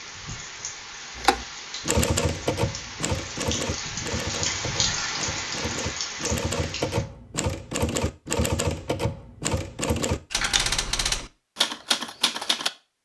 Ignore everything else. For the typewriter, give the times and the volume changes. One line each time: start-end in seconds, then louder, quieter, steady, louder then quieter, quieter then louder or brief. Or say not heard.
1.1-12.7 quieter then louder.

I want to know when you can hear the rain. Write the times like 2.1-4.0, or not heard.
0.0-7.0.